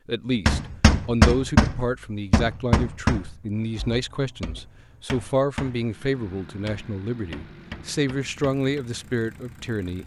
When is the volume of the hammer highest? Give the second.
1 s.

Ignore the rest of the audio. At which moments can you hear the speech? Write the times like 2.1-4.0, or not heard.
0.1-10.0.